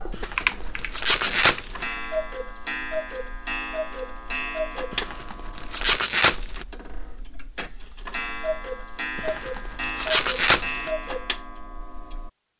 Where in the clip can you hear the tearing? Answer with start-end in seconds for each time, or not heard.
0.1-1.9, 4.9-6.7, 9.2-10.9.